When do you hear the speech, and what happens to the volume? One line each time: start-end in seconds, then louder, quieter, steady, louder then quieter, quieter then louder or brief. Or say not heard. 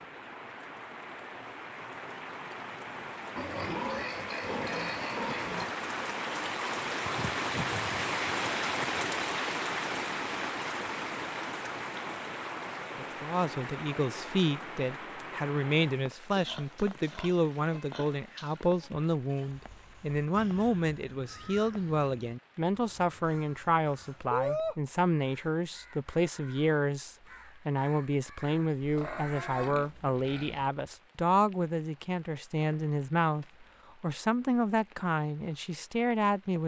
12.9-36.6 steady.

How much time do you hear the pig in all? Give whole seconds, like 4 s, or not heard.
7 s.